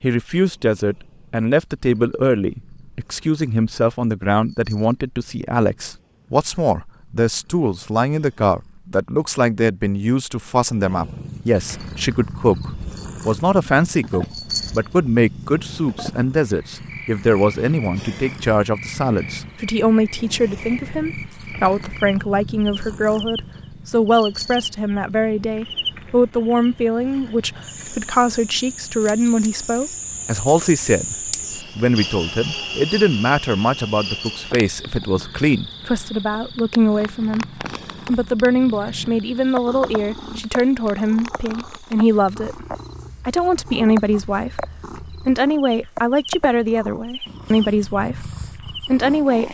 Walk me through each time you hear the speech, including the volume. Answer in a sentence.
You can hear the speech from 0.0 to 49.4 s, at a steady volume.